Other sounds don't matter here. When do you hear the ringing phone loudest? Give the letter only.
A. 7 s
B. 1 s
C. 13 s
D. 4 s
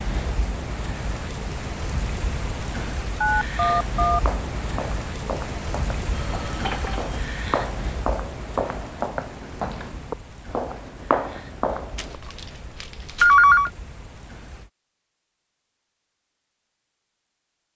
C.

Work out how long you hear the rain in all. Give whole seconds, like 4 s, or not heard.
15 s.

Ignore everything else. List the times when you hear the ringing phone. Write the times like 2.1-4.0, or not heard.
3.2-4.2, 6.1-7.2, 11.9-13.7.